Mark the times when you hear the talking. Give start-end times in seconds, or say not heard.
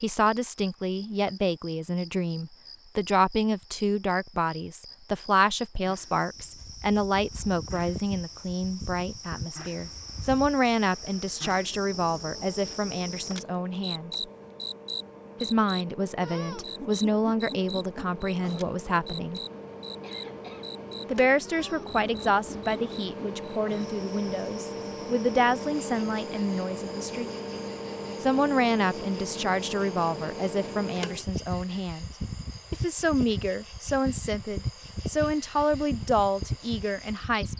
0.0-14.1, 15.4-19.4, 21.1-27.3, 28.2-32.1, 32.7-37.5.